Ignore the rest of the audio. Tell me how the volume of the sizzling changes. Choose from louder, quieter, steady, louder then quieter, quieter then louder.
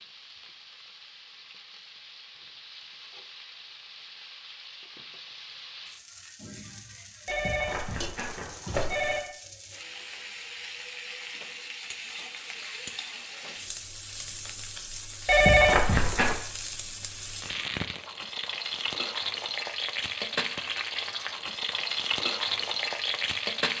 louder.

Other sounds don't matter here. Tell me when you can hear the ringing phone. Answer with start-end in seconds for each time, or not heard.
7.2-9.2, 15.2-16.4.